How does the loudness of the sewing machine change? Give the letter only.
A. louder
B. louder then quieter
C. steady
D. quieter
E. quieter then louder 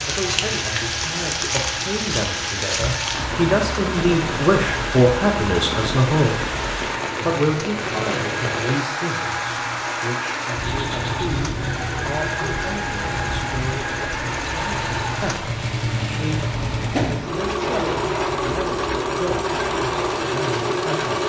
A.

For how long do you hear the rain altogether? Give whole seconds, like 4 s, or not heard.
21 s.